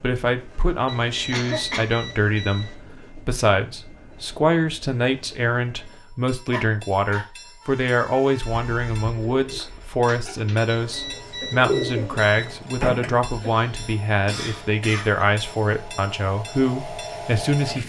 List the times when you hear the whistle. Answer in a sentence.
The whistle can't be heard in this clip.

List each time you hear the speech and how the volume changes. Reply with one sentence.
You can hear the speech from 0.0 to 17.8 s, at a steady volume.